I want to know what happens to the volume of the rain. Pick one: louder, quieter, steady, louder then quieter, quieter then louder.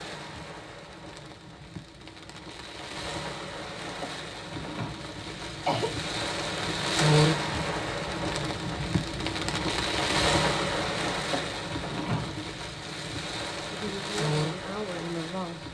louder then quieter.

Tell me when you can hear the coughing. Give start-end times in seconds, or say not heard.
4.0-5.9, 11.3-12.4.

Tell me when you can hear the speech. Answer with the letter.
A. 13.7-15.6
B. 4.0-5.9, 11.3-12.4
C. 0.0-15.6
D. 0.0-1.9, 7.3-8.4
A.